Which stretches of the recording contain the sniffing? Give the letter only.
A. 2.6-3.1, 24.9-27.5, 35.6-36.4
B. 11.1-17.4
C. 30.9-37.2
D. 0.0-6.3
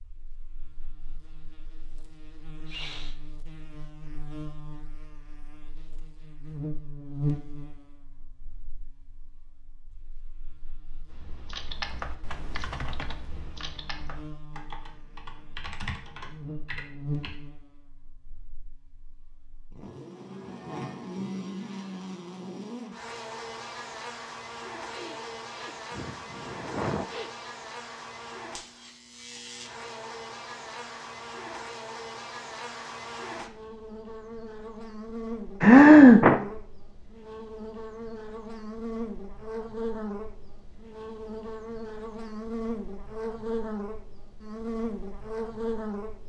A.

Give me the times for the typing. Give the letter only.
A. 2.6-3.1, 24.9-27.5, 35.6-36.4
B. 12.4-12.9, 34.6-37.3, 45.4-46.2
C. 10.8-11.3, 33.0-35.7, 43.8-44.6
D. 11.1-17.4
D.